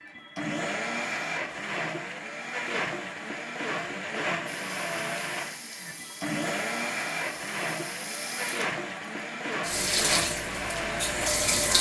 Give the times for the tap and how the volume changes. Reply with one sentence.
The tap can be heard from 4.5 to 11.7 s, getting louder.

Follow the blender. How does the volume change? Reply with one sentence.
The volume of the blender stays about the same.